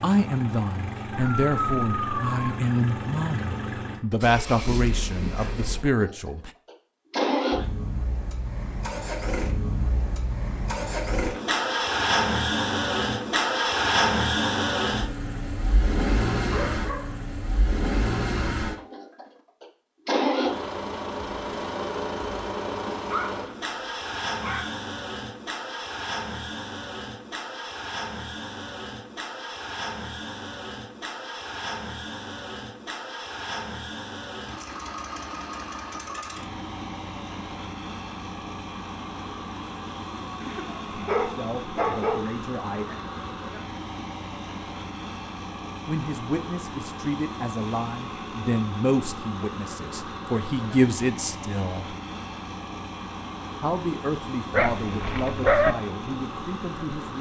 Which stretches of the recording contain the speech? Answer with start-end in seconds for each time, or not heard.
0.0-6.5, 41.1-43.1, 45.9-52.0, 53.6-57.1.